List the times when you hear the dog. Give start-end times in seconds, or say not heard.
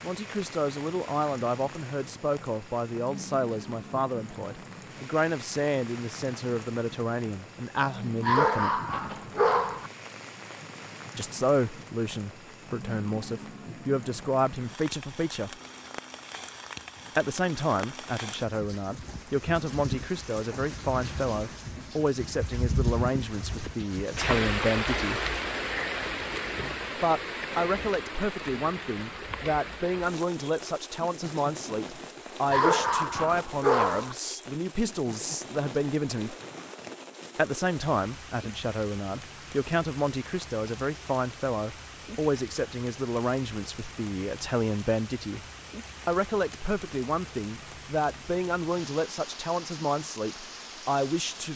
8.2-9.9, 32.5-34.1.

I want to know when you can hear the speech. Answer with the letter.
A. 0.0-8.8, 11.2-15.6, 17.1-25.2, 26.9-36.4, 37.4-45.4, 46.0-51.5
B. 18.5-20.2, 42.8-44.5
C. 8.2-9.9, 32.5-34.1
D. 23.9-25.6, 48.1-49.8
A.